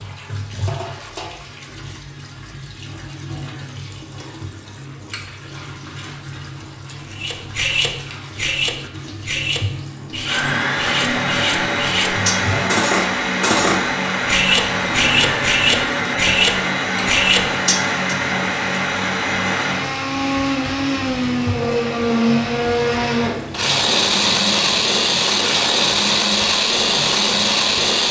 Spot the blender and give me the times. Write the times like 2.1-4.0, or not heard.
10.2-28.0.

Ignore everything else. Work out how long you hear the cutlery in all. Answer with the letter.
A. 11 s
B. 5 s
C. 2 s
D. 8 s
A.